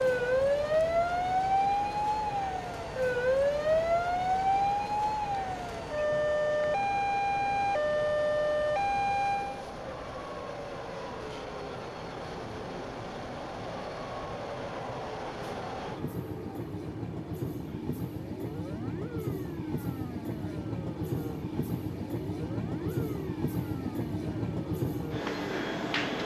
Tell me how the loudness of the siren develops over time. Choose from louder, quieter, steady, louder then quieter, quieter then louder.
quieter.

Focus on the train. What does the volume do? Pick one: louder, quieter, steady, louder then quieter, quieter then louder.
louder.